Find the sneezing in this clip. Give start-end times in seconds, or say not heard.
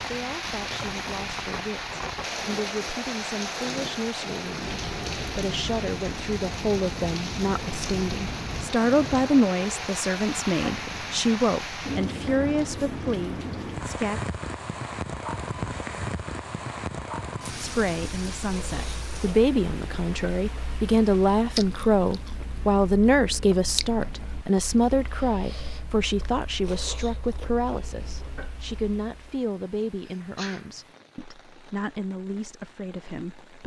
30.0-30.7.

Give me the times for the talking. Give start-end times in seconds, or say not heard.
0.1-14.2, 17.6-33.6.